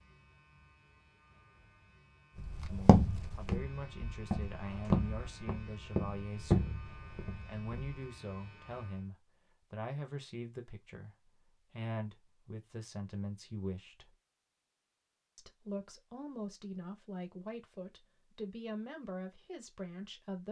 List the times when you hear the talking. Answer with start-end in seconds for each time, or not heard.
2.7-14.2, 15.3-20.4.